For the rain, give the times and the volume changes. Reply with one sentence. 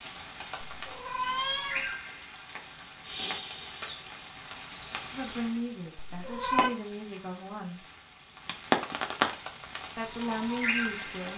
You can hear the rain from 0.0 to 11.3 s, getting louder.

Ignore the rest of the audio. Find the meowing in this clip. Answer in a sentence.
The meowing can be heard from 0.8 to 1.9 s and from 6.0 to 6.7 s.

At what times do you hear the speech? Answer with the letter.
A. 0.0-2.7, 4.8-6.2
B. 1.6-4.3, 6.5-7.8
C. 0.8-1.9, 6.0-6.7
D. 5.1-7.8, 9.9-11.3
D.